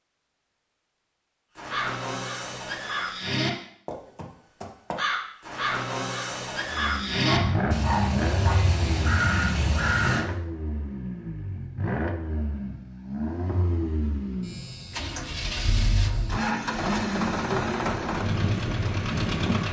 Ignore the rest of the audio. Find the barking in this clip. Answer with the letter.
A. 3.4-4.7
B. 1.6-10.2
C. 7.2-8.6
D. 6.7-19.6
C.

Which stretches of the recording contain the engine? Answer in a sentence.
You can hear the engine from 6.7 to 19.6 s.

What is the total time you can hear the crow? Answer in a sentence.
The crow can be heard for 9 seconds in total.